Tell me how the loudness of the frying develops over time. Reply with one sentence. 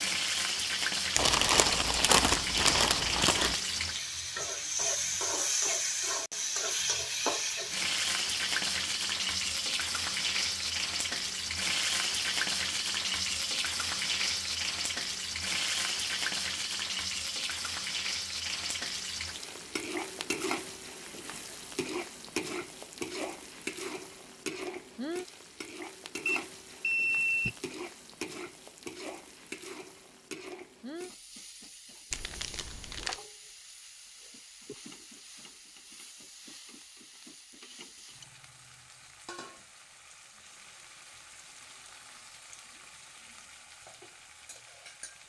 The loudness of the frying goes down.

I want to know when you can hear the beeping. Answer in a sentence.
The beeping can be heard from 26.2 to 27.6 s.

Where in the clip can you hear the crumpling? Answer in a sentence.
You can hear the crumpling from 1.1 to 3.6 s and from 32.1 to 33.2 s.